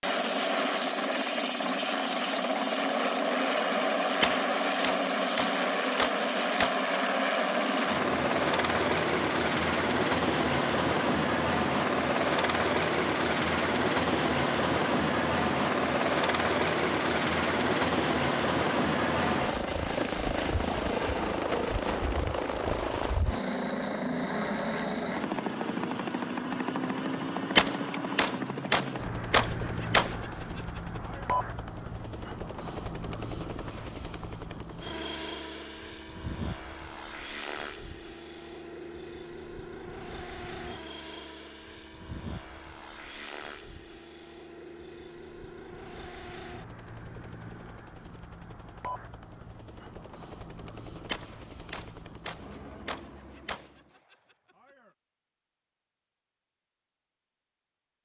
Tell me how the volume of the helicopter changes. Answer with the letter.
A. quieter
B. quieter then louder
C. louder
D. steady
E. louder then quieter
A.